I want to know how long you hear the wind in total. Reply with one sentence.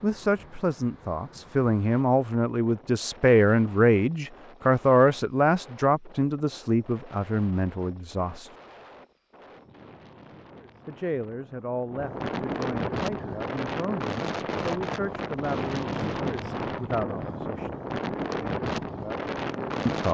The wind can be heard for 20 seconds in total.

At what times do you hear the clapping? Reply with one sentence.
You can't hear the clapping here.